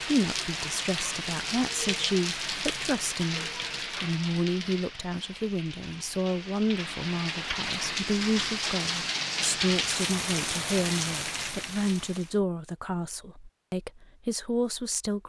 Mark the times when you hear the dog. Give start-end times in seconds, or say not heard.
not heard.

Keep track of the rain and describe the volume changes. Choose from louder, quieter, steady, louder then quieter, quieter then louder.
quieter then louder.